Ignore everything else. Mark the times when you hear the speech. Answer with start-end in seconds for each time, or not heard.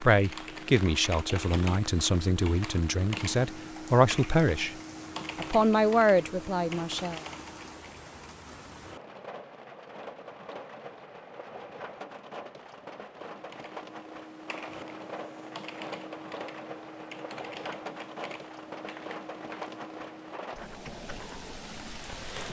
0.0-4.8, 5.3-7.2.